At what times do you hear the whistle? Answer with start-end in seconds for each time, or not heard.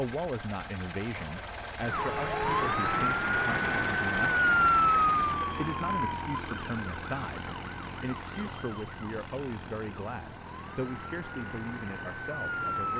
not heard.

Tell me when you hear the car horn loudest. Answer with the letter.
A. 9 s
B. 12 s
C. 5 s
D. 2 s
D.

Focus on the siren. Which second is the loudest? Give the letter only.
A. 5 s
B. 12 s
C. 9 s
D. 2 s
A.